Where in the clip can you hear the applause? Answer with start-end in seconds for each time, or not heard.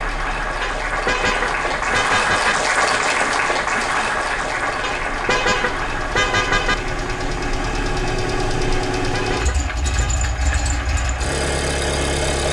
0.0-12.4.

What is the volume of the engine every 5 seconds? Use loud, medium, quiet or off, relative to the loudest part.
quiet, loud, loud.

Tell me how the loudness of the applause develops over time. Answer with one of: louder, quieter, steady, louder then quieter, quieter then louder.
quieter.